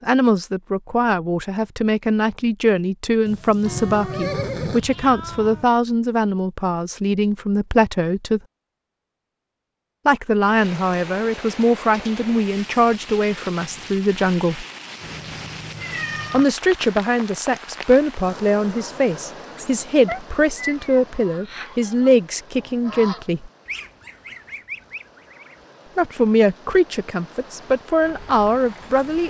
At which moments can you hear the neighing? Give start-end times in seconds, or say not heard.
3.2-4.8.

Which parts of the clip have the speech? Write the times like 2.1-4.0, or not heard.
0.0-8.4, 10.1-14.7, 16.3-23.5, 25.9-29.2.